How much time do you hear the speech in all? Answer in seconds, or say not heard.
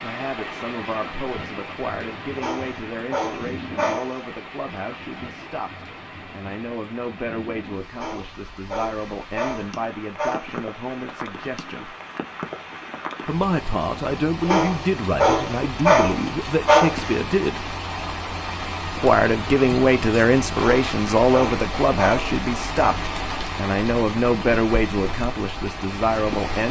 24 s.